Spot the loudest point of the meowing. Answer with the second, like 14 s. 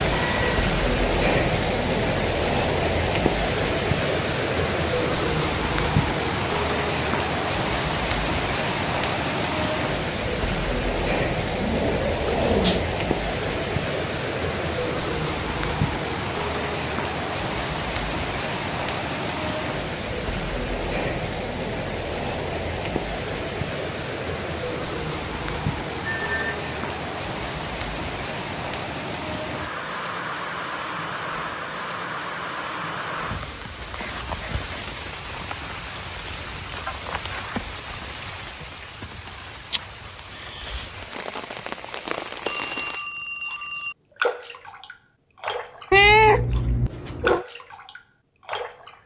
46 s.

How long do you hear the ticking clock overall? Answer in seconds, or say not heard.
not heard.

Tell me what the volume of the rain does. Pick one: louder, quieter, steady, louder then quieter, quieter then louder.
quieter.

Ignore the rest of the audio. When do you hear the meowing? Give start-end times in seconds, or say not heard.
11.6-12.8, 45.9-47.5.